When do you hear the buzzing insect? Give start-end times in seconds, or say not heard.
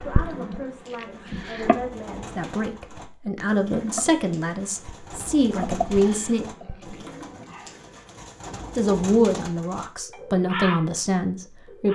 0.0-1.8, 3.8-7.8.